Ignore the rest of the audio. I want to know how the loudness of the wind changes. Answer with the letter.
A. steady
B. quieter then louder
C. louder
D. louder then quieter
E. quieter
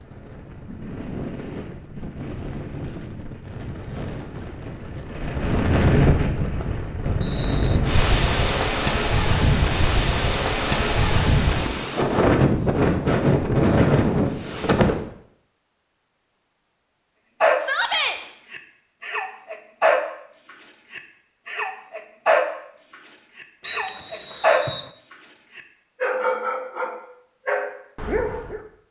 C.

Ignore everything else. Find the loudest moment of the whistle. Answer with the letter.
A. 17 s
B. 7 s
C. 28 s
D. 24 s
D.